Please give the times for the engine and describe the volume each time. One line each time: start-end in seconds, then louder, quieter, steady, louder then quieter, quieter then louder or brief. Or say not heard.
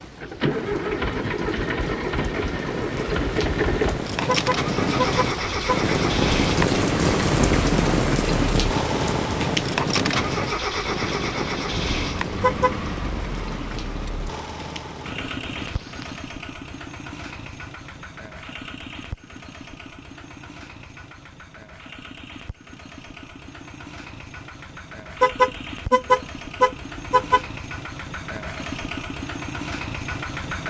0.0-30.6 quieter then louder.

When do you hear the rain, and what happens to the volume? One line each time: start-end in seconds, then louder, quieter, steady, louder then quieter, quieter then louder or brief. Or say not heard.
0.0-16.2 louder then quieter.